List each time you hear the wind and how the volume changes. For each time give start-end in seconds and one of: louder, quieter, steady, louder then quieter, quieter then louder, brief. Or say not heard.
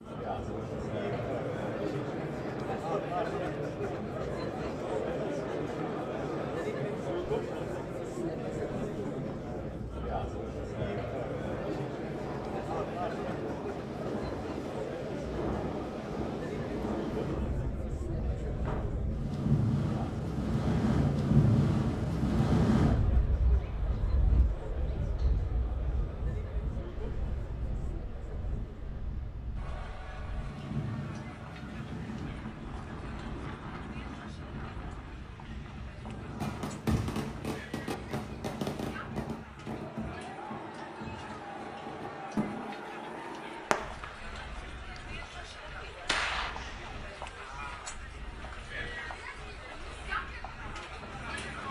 0.0-51.6 louder then quieter.